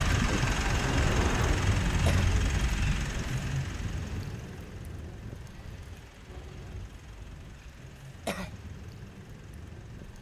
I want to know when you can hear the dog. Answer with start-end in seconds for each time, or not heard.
not heard.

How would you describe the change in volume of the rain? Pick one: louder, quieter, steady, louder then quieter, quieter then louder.
quieter.